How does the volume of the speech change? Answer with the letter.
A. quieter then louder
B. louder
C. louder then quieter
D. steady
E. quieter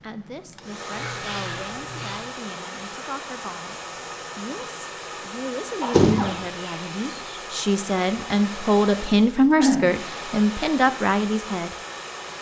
B.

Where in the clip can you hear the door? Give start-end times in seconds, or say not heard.
5.9-6.8.